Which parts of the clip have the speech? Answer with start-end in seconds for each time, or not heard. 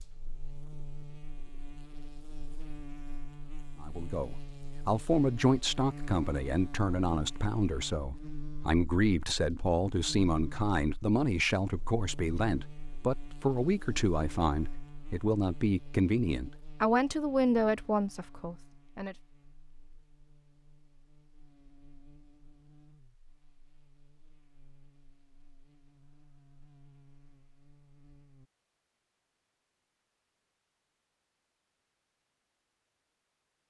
3.8-19.1.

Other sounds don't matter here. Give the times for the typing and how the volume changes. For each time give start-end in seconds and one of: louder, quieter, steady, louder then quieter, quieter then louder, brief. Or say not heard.
not heard.